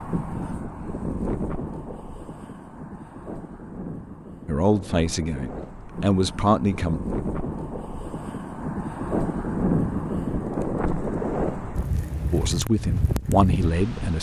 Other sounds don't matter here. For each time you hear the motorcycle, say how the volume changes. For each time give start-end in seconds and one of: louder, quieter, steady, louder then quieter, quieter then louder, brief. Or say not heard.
not heard.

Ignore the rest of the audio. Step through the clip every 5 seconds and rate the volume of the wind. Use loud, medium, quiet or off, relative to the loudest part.
medium, loud, loud.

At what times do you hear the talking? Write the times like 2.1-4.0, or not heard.
4.5-7.0, 12.3-14.1.